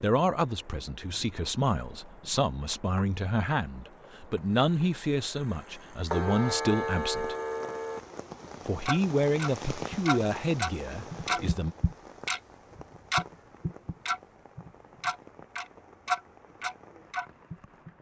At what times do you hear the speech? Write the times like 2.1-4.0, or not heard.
0.0-7.3, 8.7-11.8.